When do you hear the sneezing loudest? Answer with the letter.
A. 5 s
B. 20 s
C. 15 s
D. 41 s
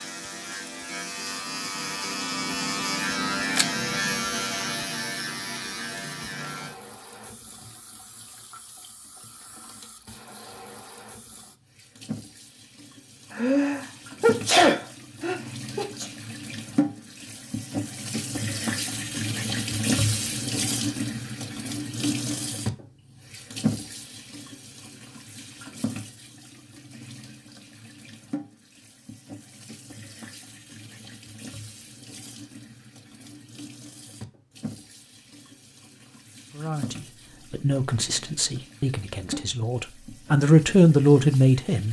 C.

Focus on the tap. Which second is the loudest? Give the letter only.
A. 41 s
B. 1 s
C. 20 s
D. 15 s
C.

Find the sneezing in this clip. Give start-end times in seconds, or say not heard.
13.3-16.1.